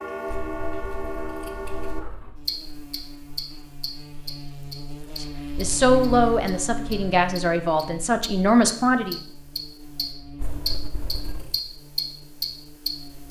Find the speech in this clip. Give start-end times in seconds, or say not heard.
5.2-9.2.